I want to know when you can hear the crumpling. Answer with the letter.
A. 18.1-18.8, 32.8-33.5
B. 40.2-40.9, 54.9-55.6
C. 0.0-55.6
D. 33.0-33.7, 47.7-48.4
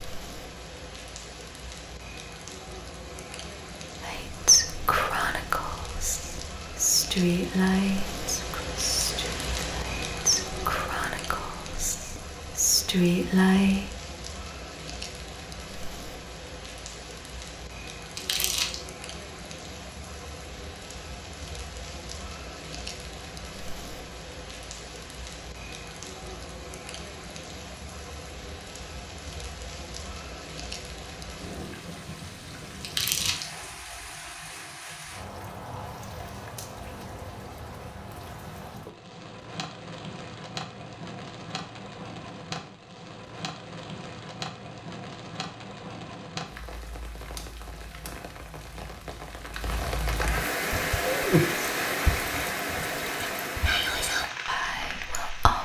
A.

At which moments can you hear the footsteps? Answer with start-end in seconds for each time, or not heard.
not heard.